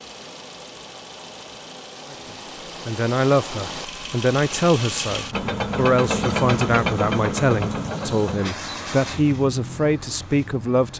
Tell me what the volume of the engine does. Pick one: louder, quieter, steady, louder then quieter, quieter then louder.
louder then quieter.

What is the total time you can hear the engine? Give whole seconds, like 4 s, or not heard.
11 s.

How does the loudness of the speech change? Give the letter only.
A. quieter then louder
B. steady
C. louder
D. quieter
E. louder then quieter
B.